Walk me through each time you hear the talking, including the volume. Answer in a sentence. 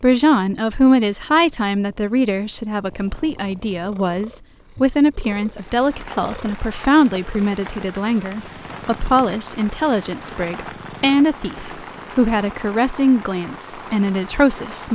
The talking can be heard from 0.0 to 14.9 s, at a steady volume.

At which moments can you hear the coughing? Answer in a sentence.
The coughing can't be heard in this clip.